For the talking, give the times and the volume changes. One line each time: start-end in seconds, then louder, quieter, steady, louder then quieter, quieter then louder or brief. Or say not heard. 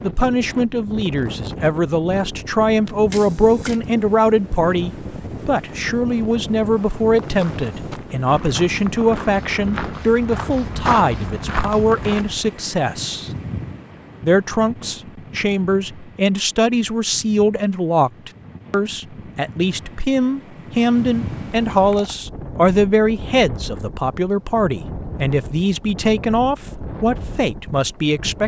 0.0-13.3 steady
14.2-28.4 steady.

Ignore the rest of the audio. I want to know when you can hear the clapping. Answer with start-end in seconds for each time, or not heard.
not heard.